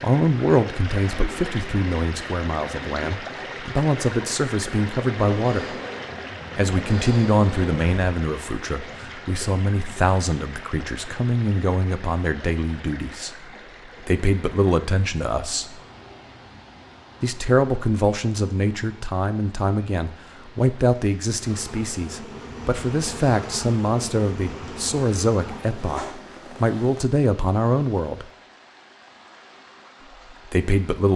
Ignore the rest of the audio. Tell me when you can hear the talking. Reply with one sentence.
The talking can be heard from 0.0 to 5.8 s, from 6.5 to 13.3 s, from 14.0 to 15.8 s, from 17.2 to 28.2 s and from 30.5 to 31.1 s.